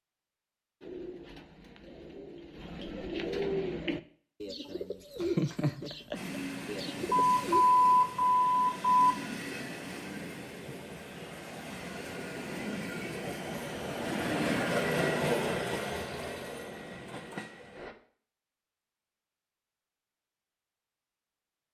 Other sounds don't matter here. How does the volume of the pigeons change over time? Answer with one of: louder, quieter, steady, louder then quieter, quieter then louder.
louder then quieter.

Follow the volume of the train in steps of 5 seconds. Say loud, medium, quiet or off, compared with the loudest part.
off, medium, loud, loud, off.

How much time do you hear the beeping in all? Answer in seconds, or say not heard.
2 s.